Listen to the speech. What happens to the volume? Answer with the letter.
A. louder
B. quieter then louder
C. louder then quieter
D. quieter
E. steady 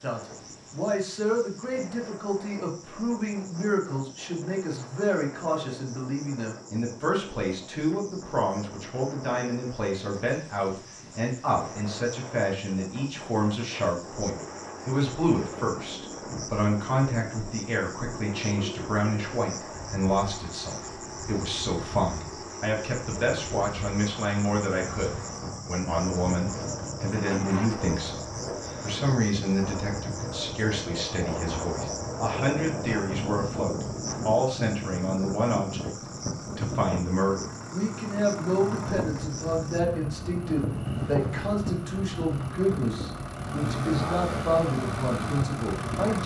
E.